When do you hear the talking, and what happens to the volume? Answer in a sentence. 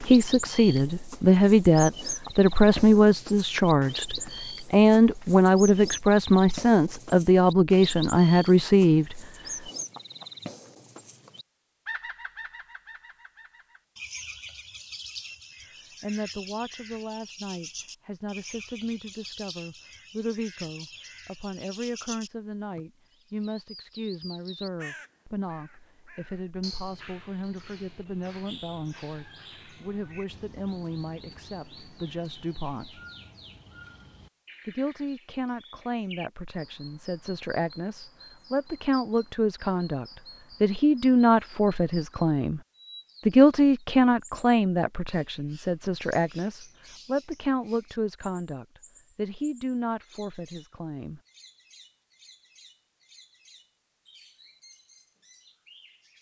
You can hear the talking from 0.0 to 9.2 s, at a steady volume; from 16.0 to 33.0 s, at a steady volume; from 34.6 to 42.6 s, getting louder; and from 43.2 to 51.2 s, getting quieter.